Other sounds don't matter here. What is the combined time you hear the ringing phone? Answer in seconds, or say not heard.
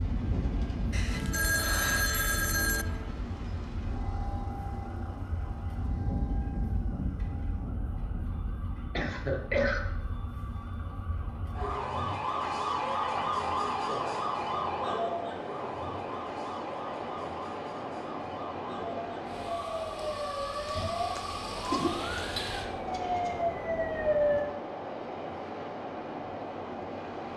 2 s.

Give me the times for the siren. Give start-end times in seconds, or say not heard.
0.0-24.4.